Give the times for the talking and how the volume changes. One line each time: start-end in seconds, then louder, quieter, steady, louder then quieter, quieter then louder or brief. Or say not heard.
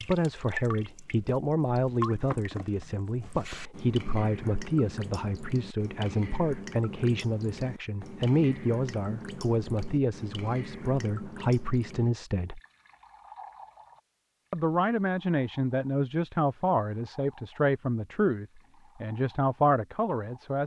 0.1-12.6 steady
14.5-20.6 steady.